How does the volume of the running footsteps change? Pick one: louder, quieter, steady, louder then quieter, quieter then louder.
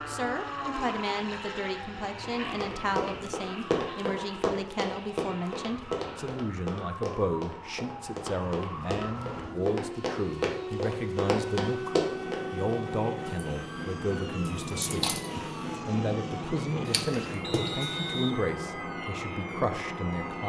quieter then louder.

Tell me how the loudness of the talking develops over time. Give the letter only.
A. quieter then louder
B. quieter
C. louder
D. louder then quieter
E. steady
E.